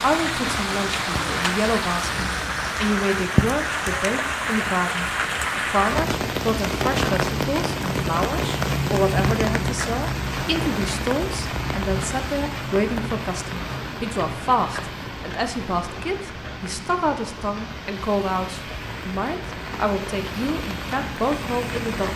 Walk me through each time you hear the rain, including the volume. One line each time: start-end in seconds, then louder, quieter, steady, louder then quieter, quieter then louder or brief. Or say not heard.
0.0-22.1 quieter.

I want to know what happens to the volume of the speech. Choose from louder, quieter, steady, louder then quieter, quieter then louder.
steady.